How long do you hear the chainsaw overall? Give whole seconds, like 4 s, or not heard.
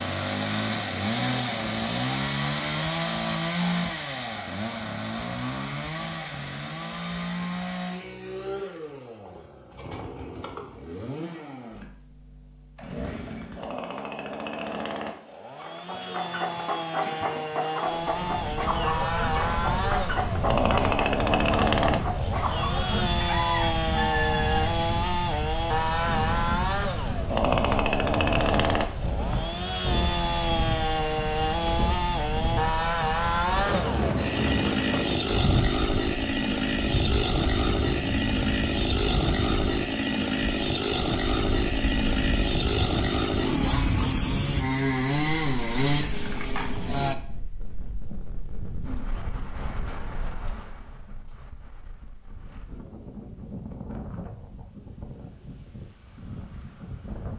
47 s.